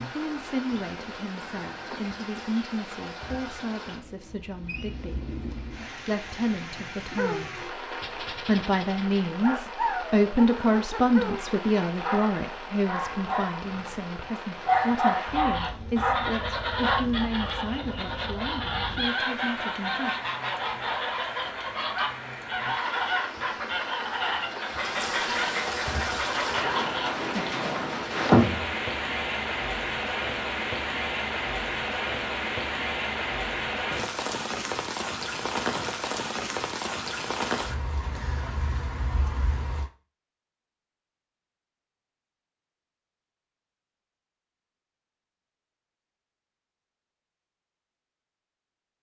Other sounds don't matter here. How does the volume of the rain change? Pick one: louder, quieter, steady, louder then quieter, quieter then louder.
louder.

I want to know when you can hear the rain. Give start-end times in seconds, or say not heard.
0.0-39.9.